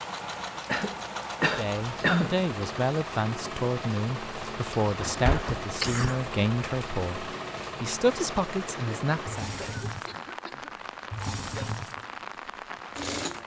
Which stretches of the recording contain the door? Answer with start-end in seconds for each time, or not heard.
5.0-5.7.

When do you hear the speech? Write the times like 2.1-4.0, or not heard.
1.4-9.5.